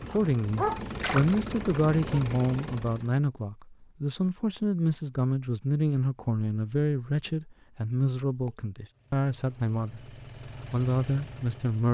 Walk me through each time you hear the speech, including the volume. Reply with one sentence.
You can hear the speech from 0.0 to 10.1 s, at a steady volume; and briefly from 10.7 to 11.9 s.